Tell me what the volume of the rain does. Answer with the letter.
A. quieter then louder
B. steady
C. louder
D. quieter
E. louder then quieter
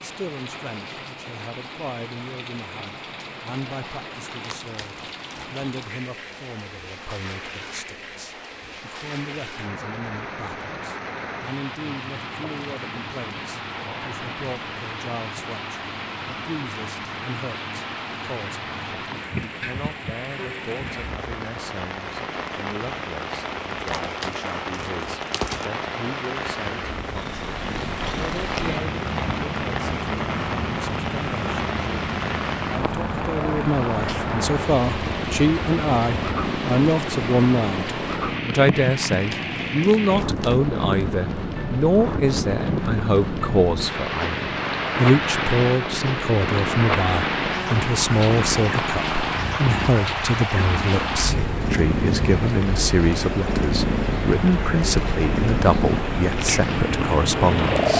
C.